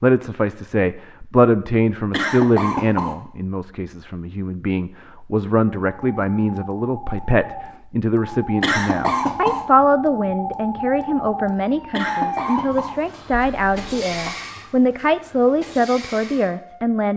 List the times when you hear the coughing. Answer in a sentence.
You can hear the coughing from 2.1 to 3.1 s, from 8.6 to 9.7 s and from 11.9 to 14.3 s.